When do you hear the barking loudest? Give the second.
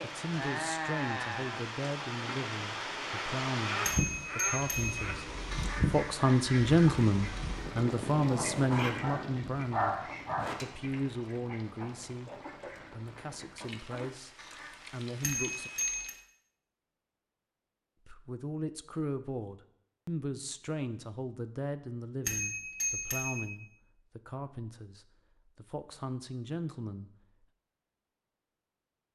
10 s.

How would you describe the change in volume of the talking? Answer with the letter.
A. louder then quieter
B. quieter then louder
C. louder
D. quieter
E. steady
A.